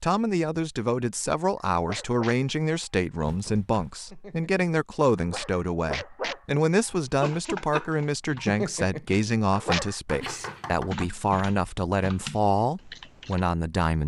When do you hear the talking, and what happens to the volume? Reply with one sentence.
The talking can be heard from 0.0 to 14.0 s, at a steady volume.